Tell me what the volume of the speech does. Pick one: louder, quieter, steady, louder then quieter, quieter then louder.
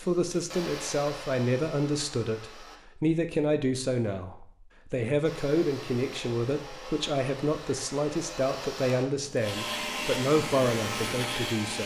steady.